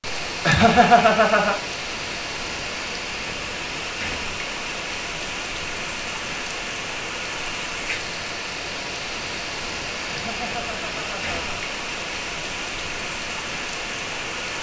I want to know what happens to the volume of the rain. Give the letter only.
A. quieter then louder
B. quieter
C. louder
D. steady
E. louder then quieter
D.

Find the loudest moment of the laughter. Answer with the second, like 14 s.
1 s.